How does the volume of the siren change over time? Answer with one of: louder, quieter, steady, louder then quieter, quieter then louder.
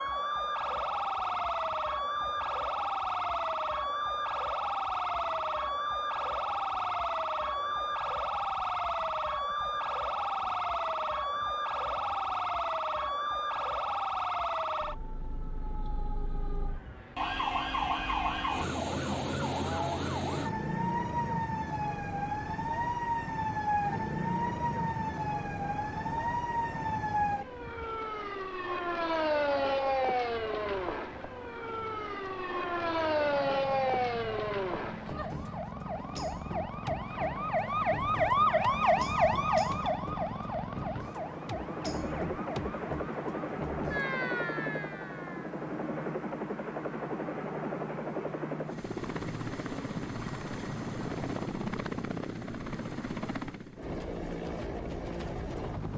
steady.